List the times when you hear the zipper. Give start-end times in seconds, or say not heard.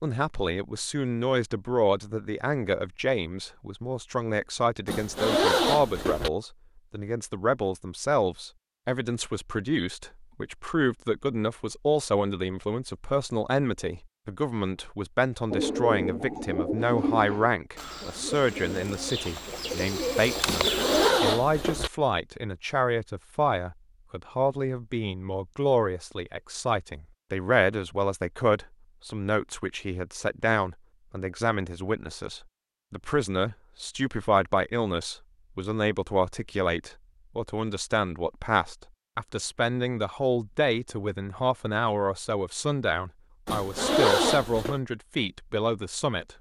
4.8-6.3, 20.4-21.9, 43.5-44.8.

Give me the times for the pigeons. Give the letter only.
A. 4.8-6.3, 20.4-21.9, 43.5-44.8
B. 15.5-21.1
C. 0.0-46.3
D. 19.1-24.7
B.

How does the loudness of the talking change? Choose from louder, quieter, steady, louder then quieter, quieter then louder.
steady.